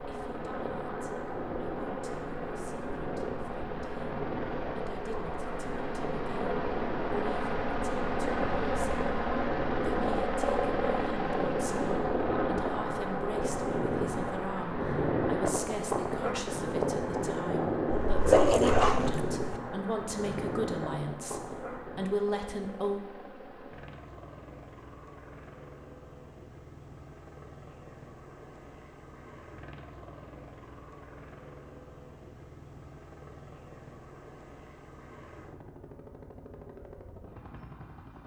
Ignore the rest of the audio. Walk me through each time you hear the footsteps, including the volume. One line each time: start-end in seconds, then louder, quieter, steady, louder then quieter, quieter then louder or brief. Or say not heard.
not heard.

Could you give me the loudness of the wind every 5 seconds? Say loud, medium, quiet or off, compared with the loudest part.
medium, medium, loud, loud, medium, off, off, off.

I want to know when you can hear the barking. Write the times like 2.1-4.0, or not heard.
17.9-19.4.